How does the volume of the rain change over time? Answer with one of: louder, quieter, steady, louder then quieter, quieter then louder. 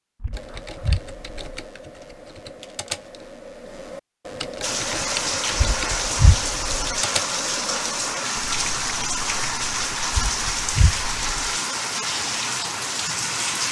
steady.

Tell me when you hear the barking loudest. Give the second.
6 s.